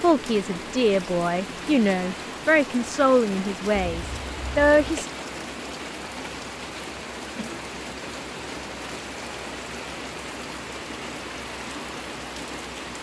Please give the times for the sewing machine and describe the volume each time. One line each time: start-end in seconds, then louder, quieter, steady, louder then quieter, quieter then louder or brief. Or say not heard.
not heard.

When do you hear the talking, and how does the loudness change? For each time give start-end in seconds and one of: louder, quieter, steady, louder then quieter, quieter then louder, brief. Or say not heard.
0.0-5.1 steady.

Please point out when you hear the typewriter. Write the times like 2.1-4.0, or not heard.
not heard.